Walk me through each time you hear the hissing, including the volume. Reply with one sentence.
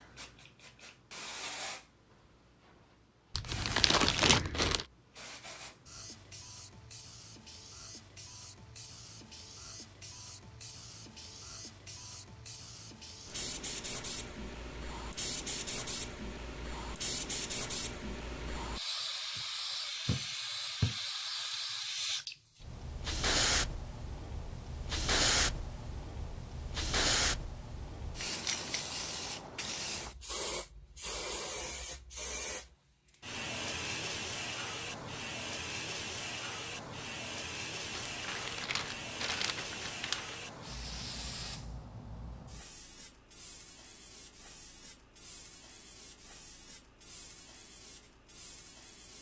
The hissing can be heard from 0.0 to 49.1 s, getting louder then quieter.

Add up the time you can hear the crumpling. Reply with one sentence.
The crumpling can be heard for 4 seconds in total.